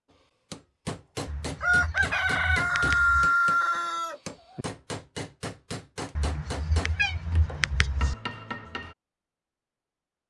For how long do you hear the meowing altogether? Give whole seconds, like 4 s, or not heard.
4 s.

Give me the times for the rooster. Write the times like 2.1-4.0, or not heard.
1.1-4.7.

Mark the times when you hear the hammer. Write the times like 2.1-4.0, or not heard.
0.5-8.9.